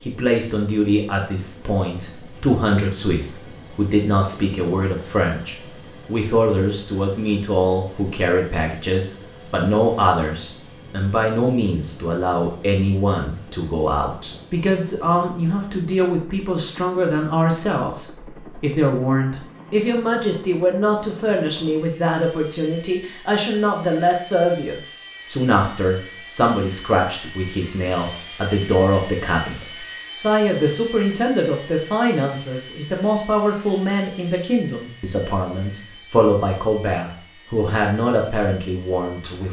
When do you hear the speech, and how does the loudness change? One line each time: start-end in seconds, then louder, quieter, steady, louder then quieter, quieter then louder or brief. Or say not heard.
0.1-39.4 steady.